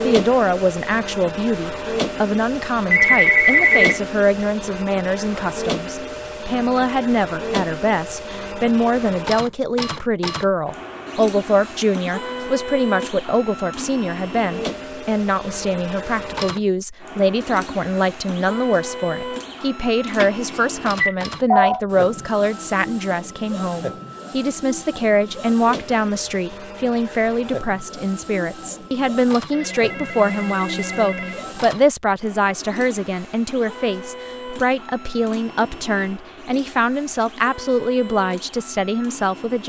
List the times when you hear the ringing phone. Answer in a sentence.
The ringing phone can be heard from 2.9 to 4.0 s, from 20.1 to 21.8 s and from 29.5 to 31.4 s.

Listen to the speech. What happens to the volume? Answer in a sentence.
The loudness of the speech stays about the same.